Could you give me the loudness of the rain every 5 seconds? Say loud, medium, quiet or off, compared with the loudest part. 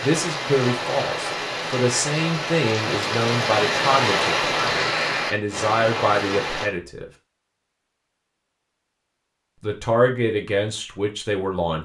loud, loud, off.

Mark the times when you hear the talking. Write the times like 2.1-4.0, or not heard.
0.0-7.1, 9.6-11.8.